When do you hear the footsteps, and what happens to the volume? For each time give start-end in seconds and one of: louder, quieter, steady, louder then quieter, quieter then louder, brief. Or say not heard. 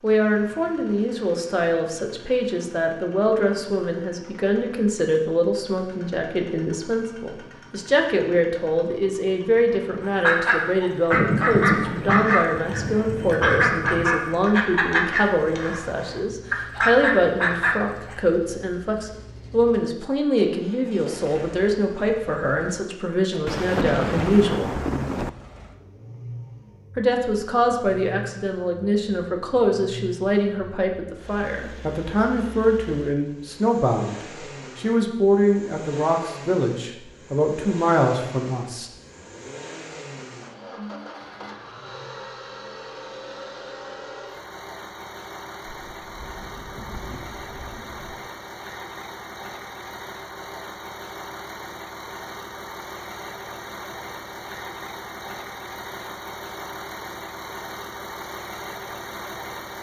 not heard.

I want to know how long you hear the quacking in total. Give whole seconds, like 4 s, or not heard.
8 s.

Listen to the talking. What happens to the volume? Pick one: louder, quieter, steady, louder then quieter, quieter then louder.
steady.